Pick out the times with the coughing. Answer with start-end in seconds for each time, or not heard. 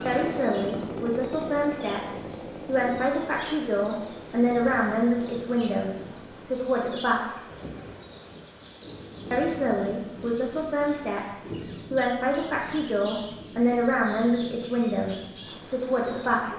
not heard.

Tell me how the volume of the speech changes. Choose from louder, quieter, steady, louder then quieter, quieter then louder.
steady.